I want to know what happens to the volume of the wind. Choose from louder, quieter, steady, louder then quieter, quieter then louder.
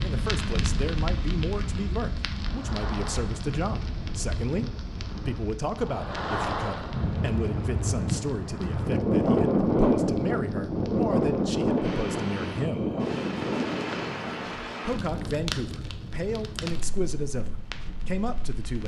louder then quieter.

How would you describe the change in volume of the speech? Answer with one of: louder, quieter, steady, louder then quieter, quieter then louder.
steady.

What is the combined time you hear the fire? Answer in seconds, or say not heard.
19 s.